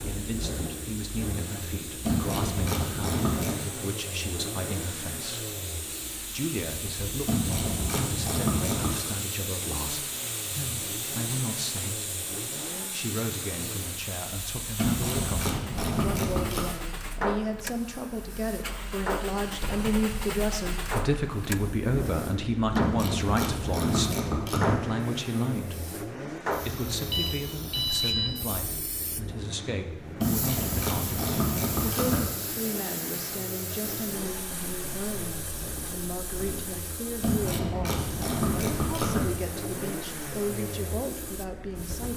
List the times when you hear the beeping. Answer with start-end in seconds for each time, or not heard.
26.9-28.3.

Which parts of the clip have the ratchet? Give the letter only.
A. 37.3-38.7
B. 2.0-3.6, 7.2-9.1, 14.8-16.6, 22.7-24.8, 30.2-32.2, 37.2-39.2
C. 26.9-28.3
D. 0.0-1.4
B.